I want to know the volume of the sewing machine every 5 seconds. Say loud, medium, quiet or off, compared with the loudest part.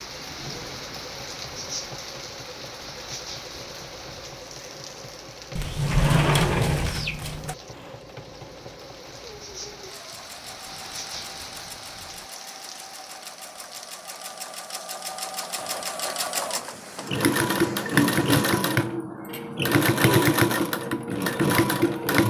quiet, quiet, quiet, loud, loud.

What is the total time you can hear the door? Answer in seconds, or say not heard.
2 s.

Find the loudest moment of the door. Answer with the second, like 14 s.
6 s.